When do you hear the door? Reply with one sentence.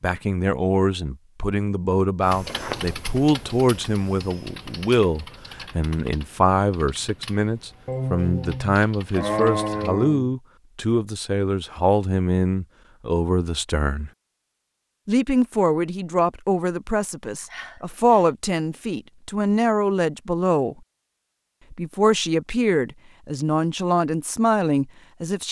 You can hear the door from 2.5 to 3.0 s.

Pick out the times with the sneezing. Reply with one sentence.
The sneezing can be heard from 7.8 to 10.3 s and from 17.4 to 18.3 s.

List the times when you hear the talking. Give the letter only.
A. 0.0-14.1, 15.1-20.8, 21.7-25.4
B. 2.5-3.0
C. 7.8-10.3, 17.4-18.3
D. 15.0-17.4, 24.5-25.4
A.